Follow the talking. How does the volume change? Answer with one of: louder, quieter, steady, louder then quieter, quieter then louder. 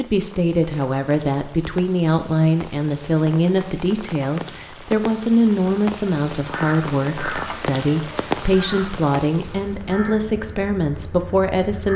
steady.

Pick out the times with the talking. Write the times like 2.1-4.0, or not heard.
0.0-11.9.